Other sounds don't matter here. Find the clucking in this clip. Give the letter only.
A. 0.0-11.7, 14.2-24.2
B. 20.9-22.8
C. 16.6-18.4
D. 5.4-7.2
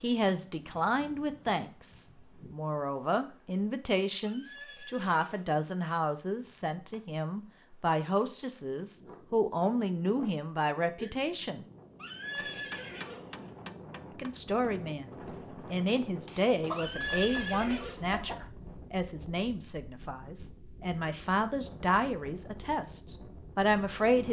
C.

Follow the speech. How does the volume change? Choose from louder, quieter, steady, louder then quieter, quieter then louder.
steady.